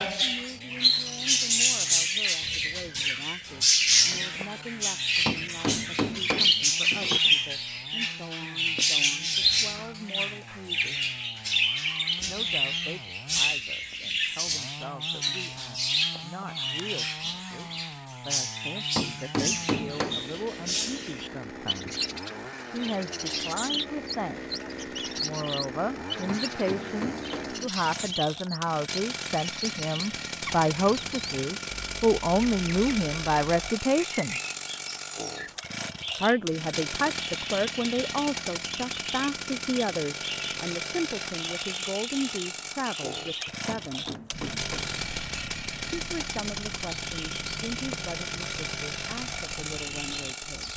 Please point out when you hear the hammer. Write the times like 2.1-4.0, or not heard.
5.2-7.2, 18.9-20.3, 26.2-27.6, 43.6-45.0.